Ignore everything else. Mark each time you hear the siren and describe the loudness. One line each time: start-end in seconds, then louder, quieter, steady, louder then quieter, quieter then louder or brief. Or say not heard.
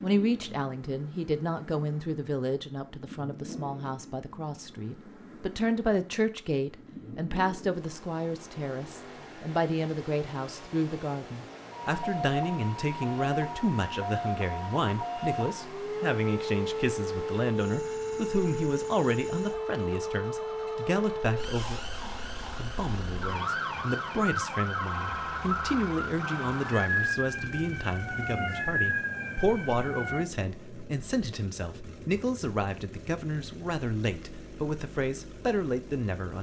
11.7-30.2 steady.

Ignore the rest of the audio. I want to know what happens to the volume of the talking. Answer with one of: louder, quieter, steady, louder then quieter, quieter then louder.
steady.